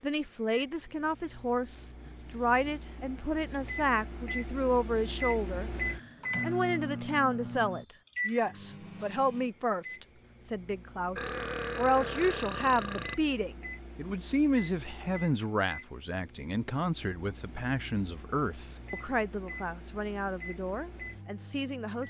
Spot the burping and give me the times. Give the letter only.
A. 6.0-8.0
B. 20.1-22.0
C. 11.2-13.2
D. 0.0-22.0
C.